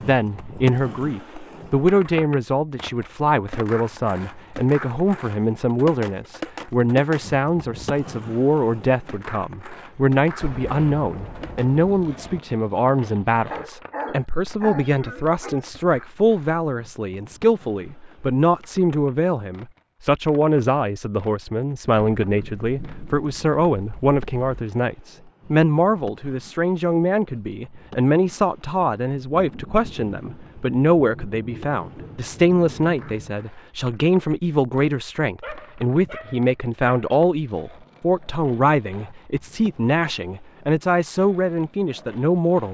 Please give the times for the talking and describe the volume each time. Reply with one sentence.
You can hear the talking from 0.1 to 42.6 s, at a steady volume.